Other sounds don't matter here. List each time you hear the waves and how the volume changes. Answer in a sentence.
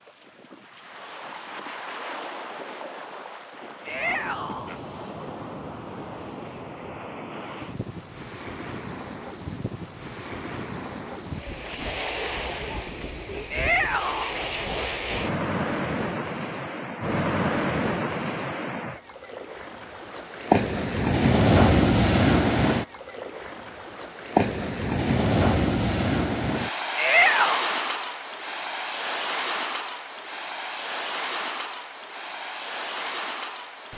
You can hear the waves from 0.0 to 33.9 s, getting louder then quieter.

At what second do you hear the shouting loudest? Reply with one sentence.
The volume of the shouting peaks at 27 seconds.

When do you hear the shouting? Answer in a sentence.
You can hear the shouting from 3.9 to 4.7 s, from 13.5 to 14.3 s and from 26.9 to 27.7 s.